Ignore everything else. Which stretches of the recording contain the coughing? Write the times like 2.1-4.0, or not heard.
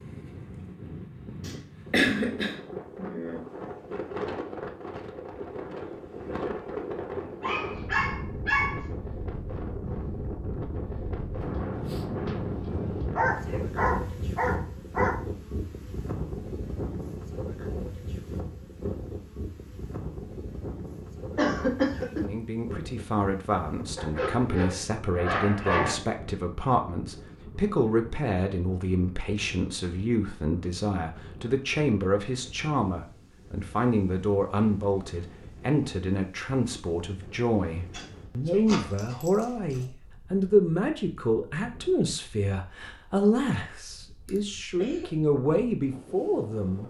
1.4-3.4, 21.4-22.2, 44.2-45.1.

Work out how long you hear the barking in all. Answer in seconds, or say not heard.
7 s.